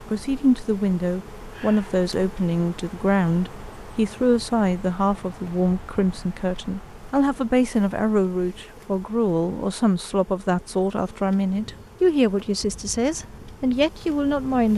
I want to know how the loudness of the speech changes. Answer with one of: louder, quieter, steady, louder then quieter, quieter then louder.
steady.